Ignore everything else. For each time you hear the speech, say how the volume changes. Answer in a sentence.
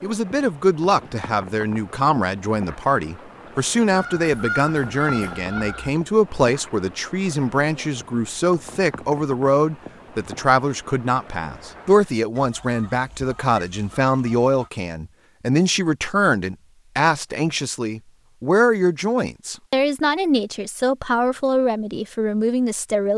The speech can be heard from 0.0 to 23.1 s, at a steady volume.